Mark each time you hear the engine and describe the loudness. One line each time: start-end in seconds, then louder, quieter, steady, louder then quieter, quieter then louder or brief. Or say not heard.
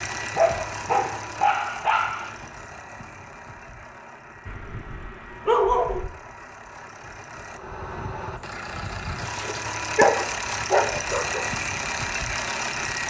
0.0-13.0 quieter then louder.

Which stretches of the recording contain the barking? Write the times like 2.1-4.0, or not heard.
0.3-2.4, 4.5-6.1, 9.2-11.4.